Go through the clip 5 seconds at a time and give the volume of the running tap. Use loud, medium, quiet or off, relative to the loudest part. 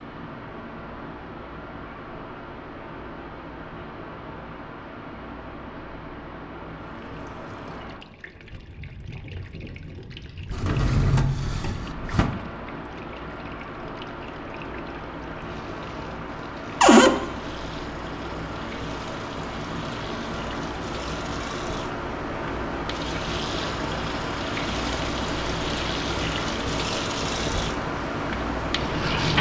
off, quiet, quiet, quiet, medium, loud.